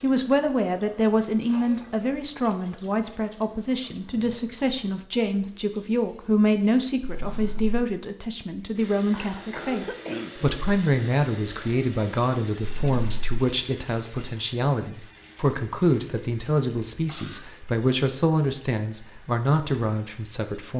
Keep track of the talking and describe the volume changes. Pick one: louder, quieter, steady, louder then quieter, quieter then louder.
steady.